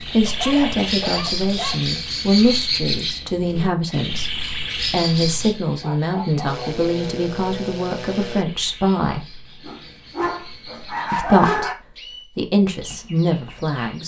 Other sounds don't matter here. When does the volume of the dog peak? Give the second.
11 s.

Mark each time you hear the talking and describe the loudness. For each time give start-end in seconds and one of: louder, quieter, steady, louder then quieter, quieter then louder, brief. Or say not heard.
0.0-9.3 steady
11.1-14.0 brief.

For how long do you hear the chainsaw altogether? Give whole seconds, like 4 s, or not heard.
2 s.